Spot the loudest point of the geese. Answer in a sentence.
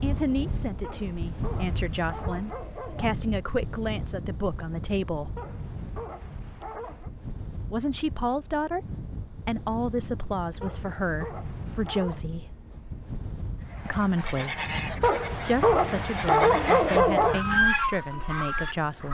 The volume of the geese peaks at 18 seconds.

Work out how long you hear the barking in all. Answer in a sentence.
You can hear the barking for 8 seconds altogether.